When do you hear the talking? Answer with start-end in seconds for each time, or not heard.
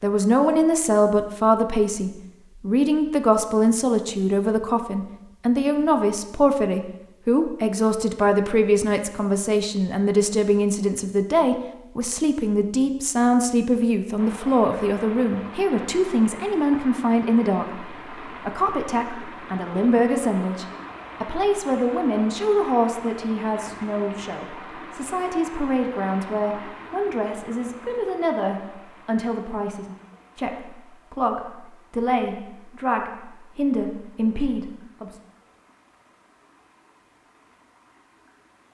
0.0-35.2.